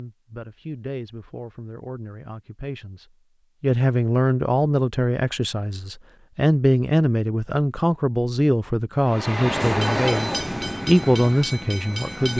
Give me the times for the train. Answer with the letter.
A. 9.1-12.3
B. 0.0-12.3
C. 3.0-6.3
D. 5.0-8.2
A.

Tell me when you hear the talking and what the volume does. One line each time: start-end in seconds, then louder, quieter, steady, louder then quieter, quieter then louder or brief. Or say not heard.
0.0-12.3 louder.